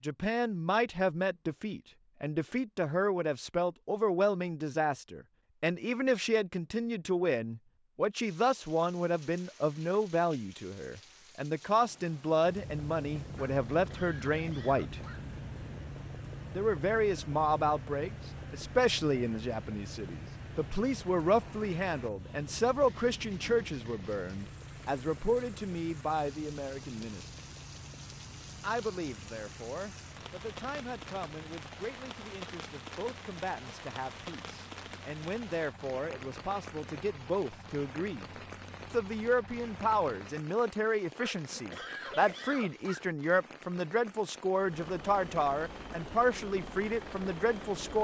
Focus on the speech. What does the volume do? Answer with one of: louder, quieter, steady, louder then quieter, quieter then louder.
quieter then louder.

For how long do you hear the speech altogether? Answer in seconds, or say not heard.
45 s.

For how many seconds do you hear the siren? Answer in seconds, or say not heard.
not heard.